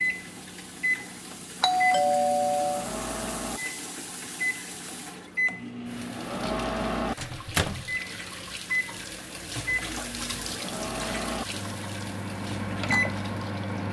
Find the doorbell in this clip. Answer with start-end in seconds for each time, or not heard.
1.6-2.9.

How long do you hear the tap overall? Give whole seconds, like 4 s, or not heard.
14 s.